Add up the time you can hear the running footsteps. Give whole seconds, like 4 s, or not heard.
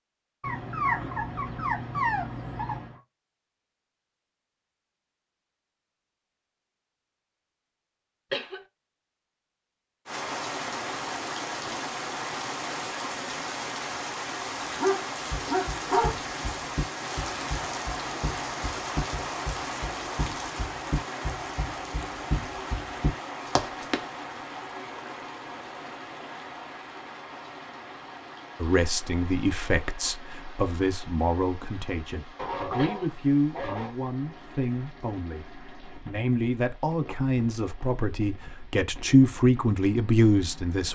9 s.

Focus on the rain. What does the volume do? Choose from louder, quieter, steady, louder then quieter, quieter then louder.
quieter.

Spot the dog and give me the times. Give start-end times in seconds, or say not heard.
0.4-3.0, 14.3-16.1, 32.4-34.0.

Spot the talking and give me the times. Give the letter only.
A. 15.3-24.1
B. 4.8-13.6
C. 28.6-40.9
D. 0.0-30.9
C.